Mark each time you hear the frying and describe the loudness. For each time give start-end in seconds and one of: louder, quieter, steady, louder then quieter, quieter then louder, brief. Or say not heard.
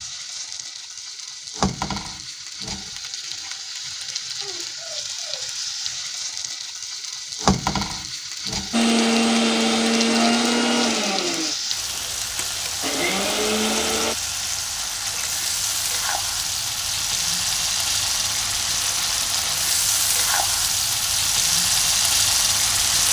0.0-23.0 louder.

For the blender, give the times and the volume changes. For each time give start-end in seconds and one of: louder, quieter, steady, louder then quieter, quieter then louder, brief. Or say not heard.
8.7-14.2 quieter then louder.